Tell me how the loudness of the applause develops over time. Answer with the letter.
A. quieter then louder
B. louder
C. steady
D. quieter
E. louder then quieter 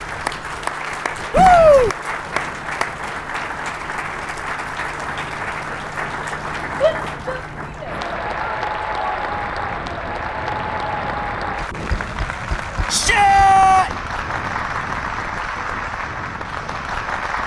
C.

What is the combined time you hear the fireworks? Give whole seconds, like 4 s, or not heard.
not heard.